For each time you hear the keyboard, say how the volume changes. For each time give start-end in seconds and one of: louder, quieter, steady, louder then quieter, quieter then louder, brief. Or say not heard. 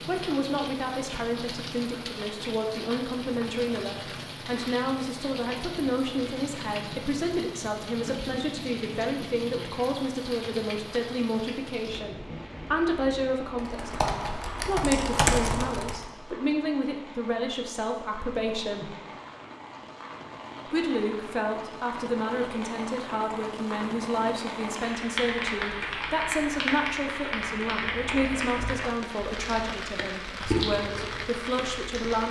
13.6-16.1 brief
24.9-32.2 quieter then louder.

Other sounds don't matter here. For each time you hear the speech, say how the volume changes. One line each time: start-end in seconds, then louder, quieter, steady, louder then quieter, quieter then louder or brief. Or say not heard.
0.1-18.9 steady
20.7-32.2 steady.